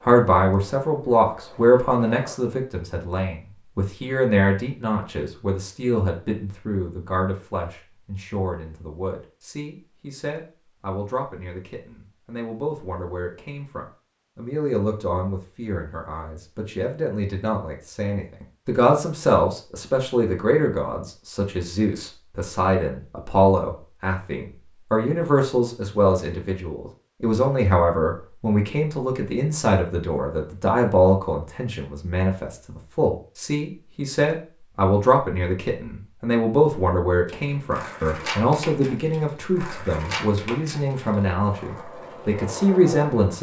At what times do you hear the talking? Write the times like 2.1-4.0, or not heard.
0.0-43.3.